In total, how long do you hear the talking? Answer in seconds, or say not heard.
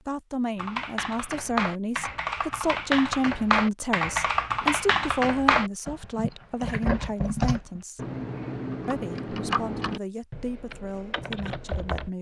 11 s.